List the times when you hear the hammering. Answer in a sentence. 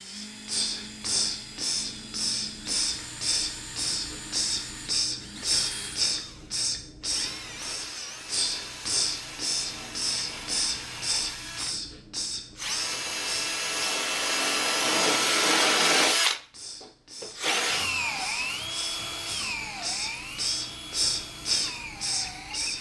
You can't hear the hammering here.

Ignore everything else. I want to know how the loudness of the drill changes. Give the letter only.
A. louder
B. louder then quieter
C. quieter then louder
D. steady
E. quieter
B.